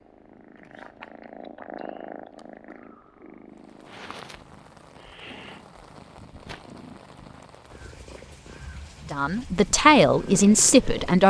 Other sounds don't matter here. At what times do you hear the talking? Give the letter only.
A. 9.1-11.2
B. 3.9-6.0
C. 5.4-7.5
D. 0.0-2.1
A.